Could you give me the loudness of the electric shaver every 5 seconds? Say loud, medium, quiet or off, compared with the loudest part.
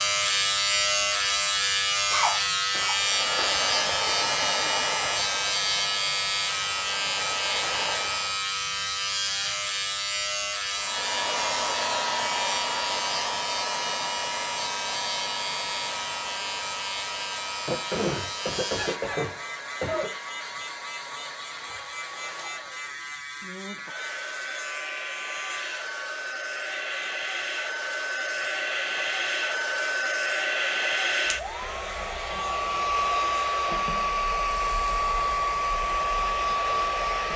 loud, loud, medium, medium, quiet, quiet, quiet, quiet.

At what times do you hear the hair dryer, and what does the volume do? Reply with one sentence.
The hair dryer can be heard from 2.9 to 8.4 s, getting quieter then louder; and from 10.7 to 37.3 s, getting quieter then louder.